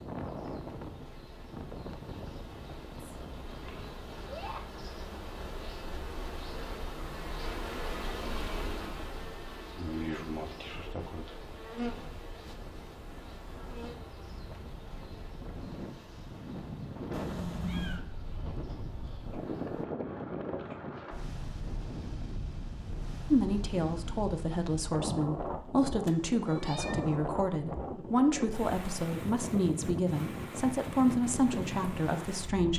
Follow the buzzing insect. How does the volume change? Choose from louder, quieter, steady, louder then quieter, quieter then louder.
louder then quieter.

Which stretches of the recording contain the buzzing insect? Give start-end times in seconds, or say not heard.
0.0-19.9.